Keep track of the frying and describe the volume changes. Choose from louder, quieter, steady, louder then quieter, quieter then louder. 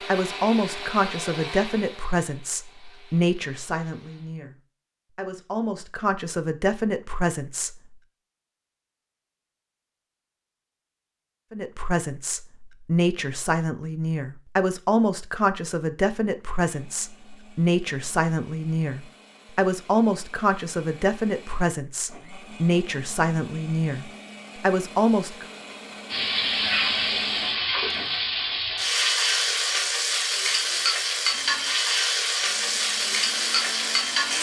steady.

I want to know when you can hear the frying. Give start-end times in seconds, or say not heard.
26.1-34.3.